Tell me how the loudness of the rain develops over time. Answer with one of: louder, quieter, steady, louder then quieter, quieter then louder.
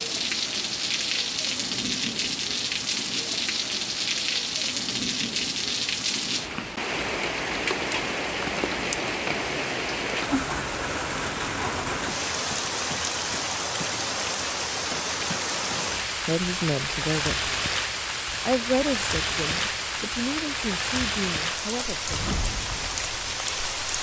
steady.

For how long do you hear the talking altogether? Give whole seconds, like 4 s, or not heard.
5 s.